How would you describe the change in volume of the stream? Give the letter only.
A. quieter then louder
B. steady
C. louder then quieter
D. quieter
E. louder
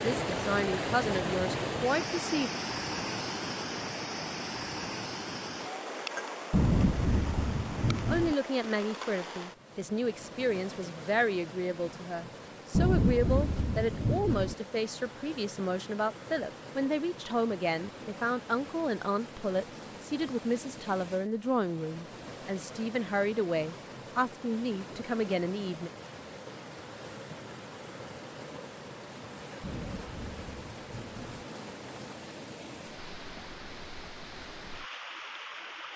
D.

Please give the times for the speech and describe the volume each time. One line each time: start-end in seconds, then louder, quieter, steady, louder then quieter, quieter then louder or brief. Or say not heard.
0.0-2.5 brief
8.1-25.9 steady.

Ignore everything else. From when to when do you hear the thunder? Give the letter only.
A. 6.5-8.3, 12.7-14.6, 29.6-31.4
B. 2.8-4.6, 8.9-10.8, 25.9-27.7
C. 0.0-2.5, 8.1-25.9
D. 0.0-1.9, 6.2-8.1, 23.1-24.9
A.